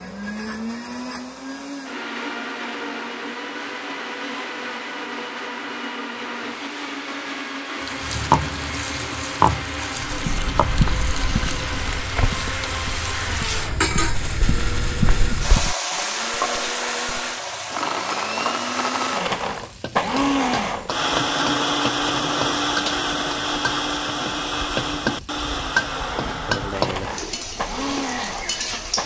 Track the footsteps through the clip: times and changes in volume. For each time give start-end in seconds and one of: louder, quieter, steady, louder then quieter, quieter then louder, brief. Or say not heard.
10.1-15.8 quieter then louder.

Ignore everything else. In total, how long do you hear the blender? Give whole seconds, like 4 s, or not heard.
29 s.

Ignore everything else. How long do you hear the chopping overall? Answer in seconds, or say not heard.
not heard.